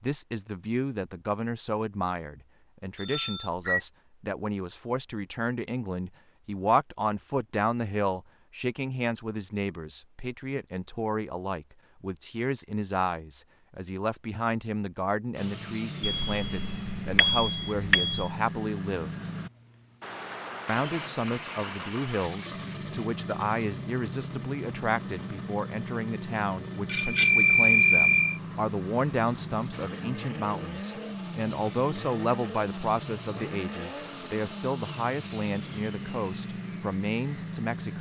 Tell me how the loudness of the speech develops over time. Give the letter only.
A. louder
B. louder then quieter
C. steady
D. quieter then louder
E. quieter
C.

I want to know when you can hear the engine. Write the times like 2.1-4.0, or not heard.
15.3-37.9.